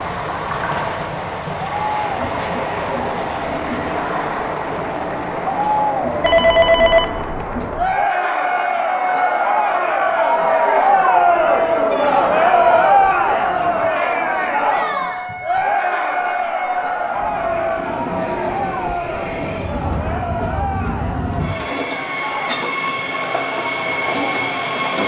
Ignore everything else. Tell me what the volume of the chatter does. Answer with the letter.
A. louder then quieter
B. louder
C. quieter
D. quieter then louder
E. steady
A.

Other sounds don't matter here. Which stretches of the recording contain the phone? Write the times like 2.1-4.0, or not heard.
6.2-7.9.